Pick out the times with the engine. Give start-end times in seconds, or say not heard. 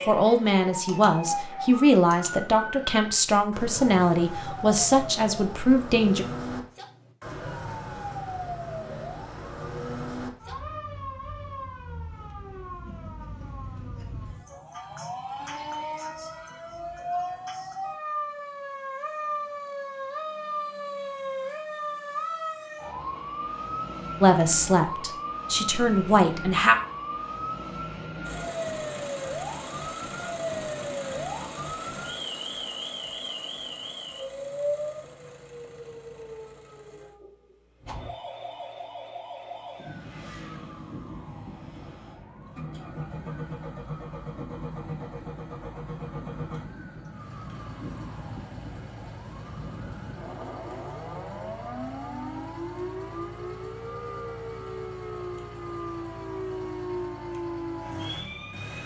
28.2-58.8.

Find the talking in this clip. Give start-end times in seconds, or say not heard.
0.1-6.2, 24.2-26.8.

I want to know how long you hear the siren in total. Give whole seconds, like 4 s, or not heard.
59 s.